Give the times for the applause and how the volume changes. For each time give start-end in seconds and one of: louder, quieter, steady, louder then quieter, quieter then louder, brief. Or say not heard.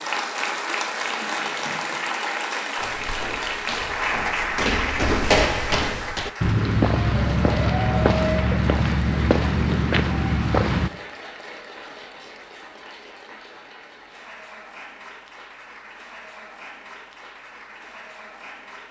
0.0-18.8 quieter.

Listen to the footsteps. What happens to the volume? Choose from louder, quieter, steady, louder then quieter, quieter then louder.
louder.